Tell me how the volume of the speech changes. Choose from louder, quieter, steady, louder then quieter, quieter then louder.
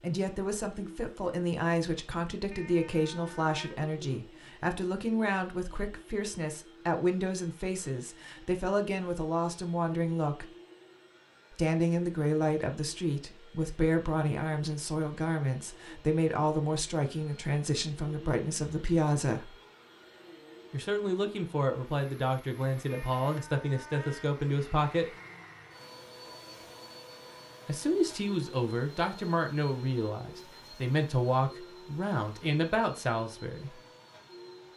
steady.